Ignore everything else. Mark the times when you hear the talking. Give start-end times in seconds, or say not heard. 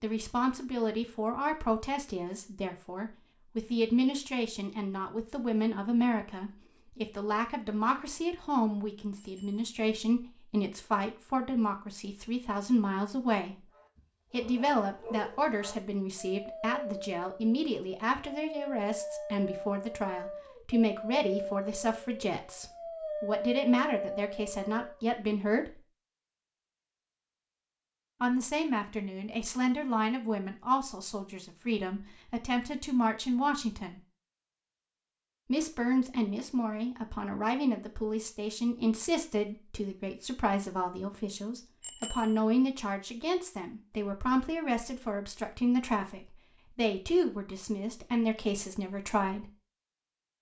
0.0-13.6, 14.3-25.8, 28.2-34.0, 35.5-49.5.